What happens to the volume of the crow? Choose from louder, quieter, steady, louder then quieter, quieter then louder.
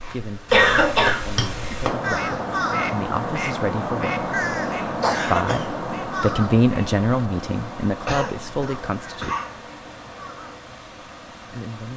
quieter.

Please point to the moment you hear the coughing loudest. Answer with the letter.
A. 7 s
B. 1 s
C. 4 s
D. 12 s
B.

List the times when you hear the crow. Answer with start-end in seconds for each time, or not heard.
1.9-10.6.